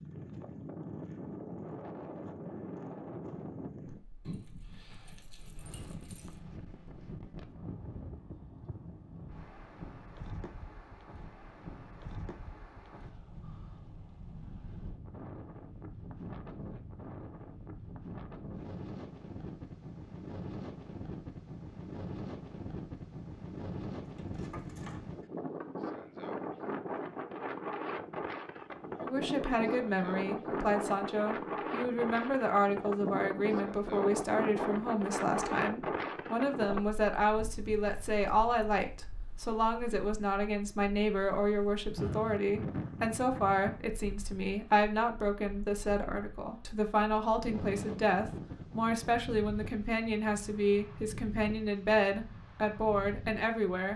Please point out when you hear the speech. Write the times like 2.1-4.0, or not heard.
29.0-53.9.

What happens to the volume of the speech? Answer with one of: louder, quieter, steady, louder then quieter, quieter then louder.
steady.